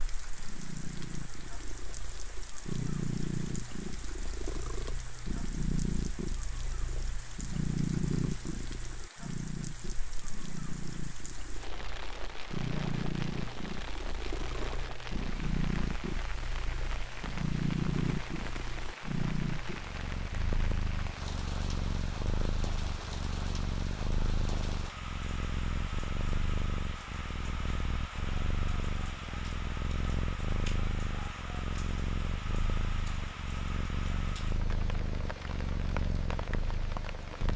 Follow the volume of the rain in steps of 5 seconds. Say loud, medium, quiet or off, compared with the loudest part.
medium, medium, loud, loud, loud, loud, loud, loud.